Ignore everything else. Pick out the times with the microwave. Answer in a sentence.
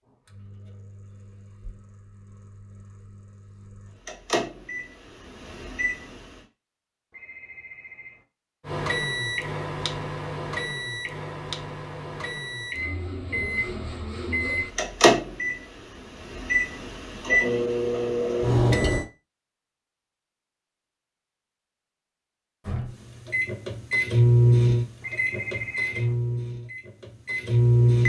You can hear the microwave from 0.1 to 6.5 s, from 8.7 to 19.1 s and from 22.6 to 28.0 s.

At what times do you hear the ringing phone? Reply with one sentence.
You can hear the ringing phone from 7.1 to 8.2 s and from 25.0 to 26.1 s.